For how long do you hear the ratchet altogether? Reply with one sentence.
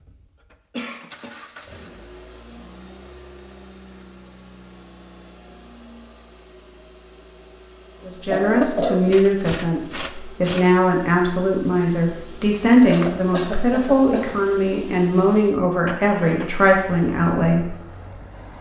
The ratchet can be heard for 2 seconds in total.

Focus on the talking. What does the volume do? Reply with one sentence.
The volume of the talking stays about the same.